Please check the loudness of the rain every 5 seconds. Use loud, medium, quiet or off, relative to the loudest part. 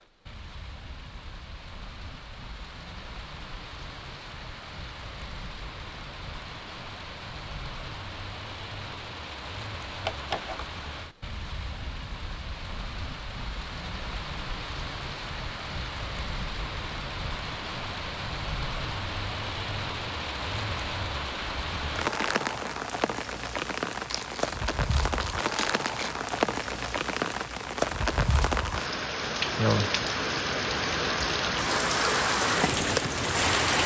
quiet, quiet, quiet, medium, medium, loud, loud.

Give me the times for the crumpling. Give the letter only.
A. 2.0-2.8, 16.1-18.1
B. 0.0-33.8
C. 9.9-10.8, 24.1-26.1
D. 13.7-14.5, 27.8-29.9
C.